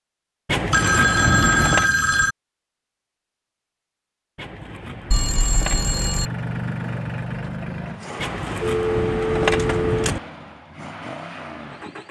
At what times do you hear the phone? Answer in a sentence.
The phone can be heard from 0.7 to 2.4 s, from 5.1 to 6.3 s and from 8.6 to 10.2 s.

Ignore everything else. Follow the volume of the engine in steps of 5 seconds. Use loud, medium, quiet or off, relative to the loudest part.
off, loud, medium.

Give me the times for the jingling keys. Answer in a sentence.
The jingling keys can be heard from 0.5 to 1.9 s, from 4.3 to 5.8 s and from 8.2 to 10.2 s.